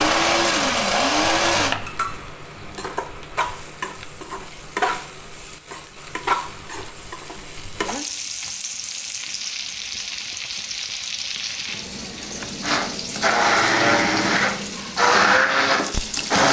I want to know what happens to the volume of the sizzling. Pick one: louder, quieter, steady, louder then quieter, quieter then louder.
steady.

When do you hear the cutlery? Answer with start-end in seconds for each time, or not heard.
not heard.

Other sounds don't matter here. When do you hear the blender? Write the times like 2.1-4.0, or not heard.
0.0-1.8, 12.6-16.4.